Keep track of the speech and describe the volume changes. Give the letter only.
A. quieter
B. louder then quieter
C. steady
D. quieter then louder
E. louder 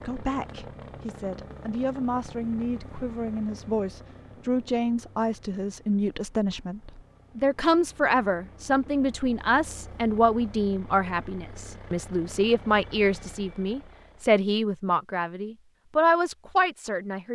E.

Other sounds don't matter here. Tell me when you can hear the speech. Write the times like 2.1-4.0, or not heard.
0.0-17.3.